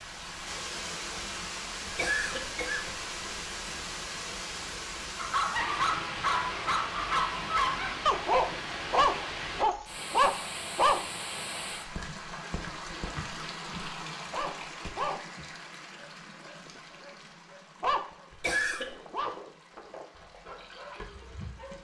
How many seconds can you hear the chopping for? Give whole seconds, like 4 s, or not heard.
not heard.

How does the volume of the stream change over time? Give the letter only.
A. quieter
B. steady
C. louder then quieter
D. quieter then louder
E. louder
A.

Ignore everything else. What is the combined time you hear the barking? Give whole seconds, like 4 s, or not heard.
13 s.